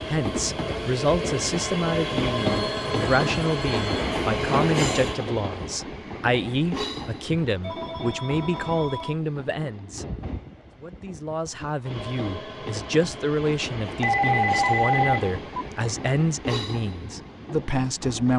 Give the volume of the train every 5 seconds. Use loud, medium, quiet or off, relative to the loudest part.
loud, medium, medium, medium.